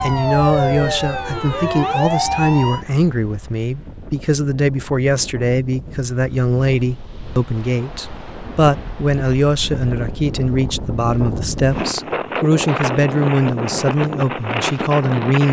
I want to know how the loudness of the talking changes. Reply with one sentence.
The loudness of the talking stays about the same.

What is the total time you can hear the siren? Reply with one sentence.
You can hear the siren for 3 seconds altogether.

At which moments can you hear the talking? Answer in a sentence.
You can hear the talking from 0.0 to 15.4 s.